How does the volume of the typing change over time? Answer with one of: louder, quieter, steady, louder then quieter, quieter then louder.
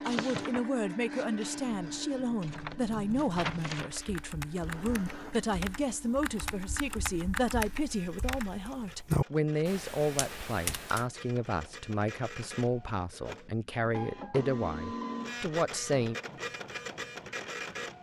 louder.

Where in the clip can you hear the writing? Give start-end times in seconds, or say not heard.
not heard.